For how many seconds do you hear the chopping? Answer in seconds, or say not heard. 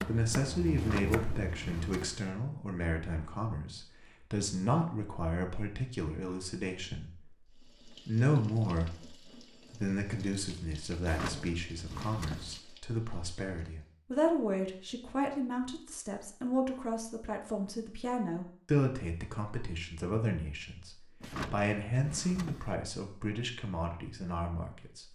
2 s.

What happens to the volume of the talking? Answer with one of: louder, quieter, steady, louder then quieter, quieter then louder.
steady.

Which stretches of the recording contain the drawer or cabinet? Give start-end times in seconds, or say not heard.
0.8-2.3, 11.0-12.6, 21.2-22.8.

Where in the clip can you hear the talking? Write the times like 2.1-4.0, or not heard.
0.1-25.1.